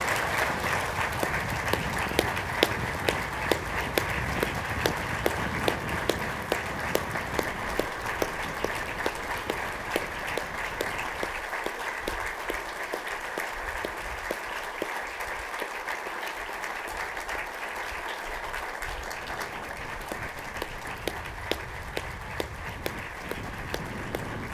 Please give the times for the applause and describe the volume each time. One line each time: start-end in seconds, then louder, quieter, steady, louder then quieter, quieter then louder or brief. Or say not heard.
0.0-24.4 quieter.